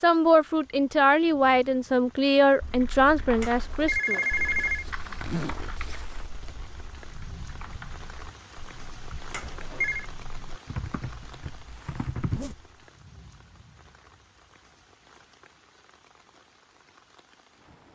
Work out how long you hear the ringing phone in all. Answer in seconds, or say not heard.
2 s.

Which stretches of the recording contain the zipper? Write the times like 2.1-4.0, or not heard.
4.4-6.8, 12.2-12.7.